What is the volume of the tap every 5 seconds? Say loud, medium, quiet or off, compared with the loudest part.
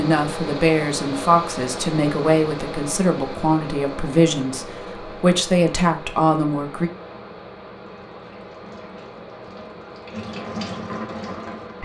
off, quiet, loud.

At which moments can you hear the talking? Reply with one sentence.
The talking can be heard from 0.0 to 6.9 s.